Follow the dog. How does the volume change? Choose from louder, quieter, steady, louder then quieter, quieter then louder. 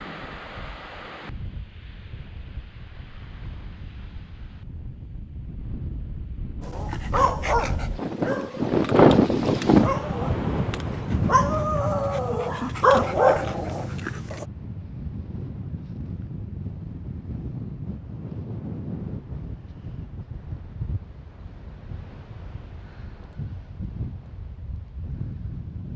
quieter then louder.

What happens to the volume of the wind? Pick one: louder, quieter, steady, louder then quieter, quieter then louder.
louder then quieter.